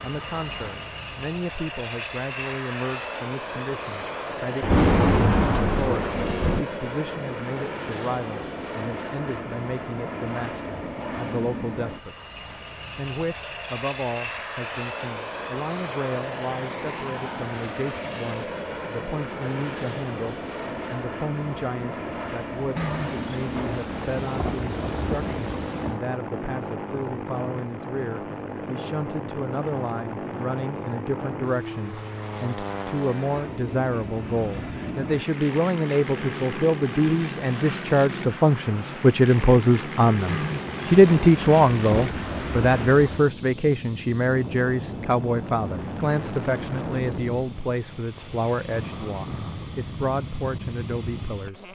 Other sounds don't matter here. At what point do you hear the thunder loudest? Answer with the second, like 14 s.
5 s.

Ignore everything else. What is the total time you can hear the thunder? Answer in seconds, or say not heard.
8 s.